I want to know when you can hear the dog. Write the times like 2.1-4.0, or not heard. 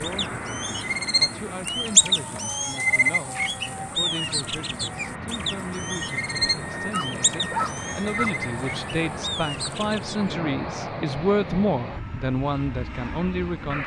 6.8-8.3.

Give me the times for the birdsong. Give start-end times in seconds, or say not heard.
0.0-10.3.